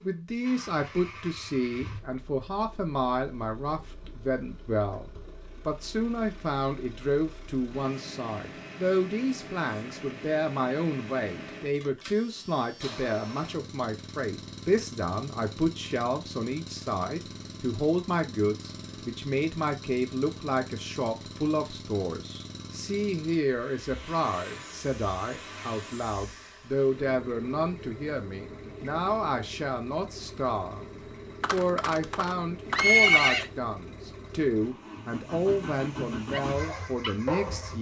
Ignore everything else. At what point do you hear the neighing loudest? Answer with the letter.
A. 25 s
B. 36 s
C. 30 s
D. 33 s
D.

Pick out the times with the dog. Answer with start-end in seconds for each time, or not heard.
36.3-37.7.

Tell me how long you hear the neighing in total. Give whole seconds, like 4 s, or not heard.
2 s.